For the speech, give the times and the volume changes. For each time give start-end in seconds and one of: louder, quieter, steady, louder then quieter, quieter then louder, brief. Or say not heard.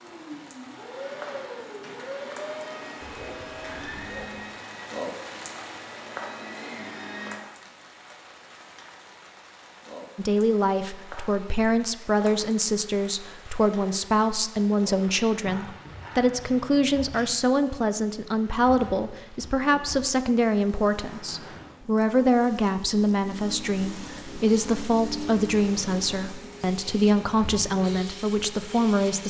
10.2-29.2 steady.